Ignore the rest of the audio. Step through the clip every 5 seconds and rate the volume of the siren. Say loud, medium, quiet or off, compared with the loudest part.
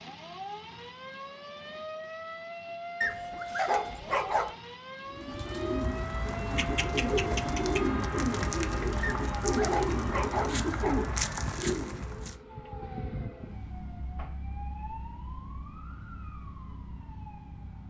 loud, loud, loud, medium.